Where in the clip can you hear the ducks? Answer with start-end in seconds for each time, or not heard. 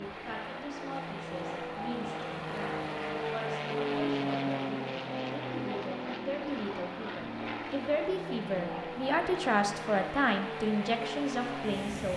not heard.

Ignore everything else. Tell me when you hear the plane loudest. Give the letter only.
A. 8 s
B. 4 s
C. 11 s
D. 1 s
B.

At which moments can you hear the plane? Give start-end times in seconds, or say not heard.
0.0-12.1.